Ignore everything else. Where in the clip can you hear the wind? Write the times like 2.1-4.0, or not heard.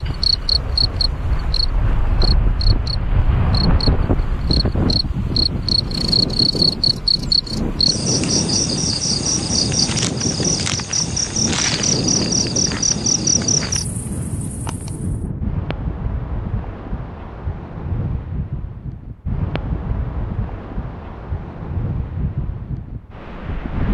0.0-23.9.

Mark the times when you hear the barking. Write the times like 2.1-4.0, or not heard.
not heard.